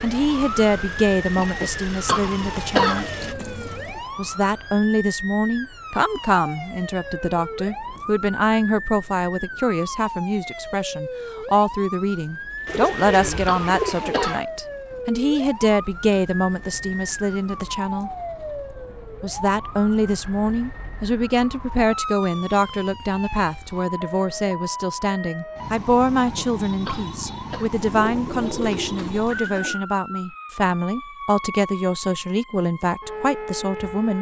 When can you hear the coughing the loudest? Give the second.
3 s.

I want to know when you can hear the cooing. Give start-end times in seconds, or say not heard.
2.0-4.0, 12.7-14.4, 27.8-29.8.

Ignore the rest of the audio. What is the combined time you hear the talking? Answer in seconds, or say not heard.
32 s.